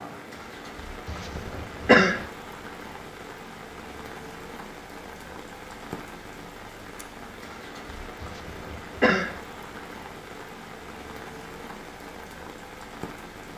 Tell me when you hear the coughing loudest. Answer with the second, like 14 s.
2 s.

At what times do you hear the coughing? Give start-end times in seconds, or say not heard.
1.1-2.2, 8.2-9.4.